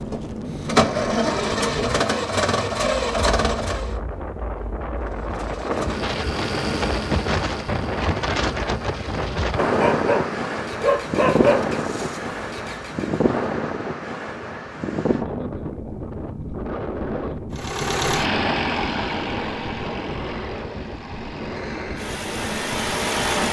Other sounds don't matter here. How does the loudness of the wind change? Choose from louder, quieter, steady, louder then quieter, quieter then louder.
louder then quieter.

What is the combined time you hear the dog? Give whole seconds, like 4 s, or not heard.
2 s.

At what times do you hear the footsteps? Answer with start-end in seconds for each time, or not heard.
not heard.